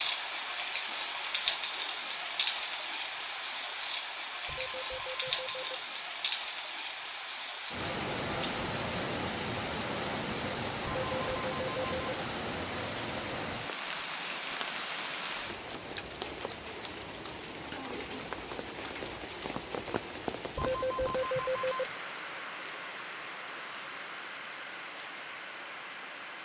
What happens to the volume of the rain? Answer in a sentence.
The loudness of the rain goes down.